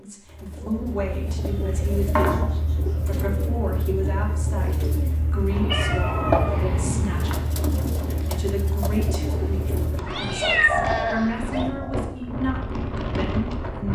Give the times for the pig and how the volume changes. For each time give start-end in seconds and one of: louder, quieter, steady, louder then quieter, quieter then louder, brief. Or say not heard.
not heard.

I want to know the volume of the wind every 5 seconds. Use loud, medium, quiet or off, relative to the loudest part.
off, loud, loud.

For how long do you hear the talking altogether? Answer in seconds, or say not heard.
14 s.